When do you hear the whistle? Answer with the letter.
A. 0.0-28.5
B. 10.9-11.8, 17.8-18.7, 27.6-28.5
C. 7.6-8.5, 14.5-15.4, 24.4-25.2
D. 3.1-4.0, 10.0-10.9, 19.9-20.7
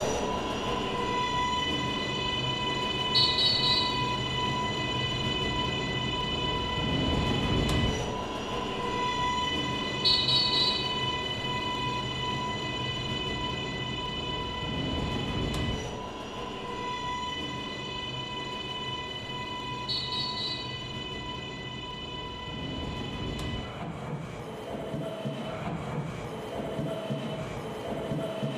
D.